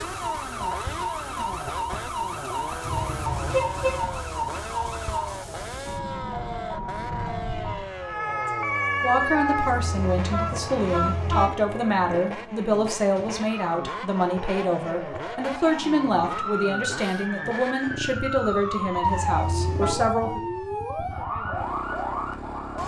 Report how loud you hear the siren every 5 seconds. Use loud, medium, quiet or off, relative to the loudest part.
loud, loud, medium, loud, loud.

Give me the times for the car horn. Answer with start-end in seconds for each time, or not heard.
2.9-4.0, 9.6-11.6, 19.0-19.9.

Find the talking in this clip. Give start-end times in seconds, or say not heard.
9.0-20.4.